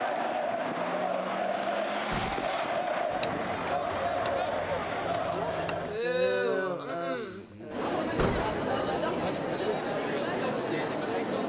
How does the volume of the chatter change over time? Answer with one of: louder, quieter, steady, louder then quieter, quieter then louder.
steady.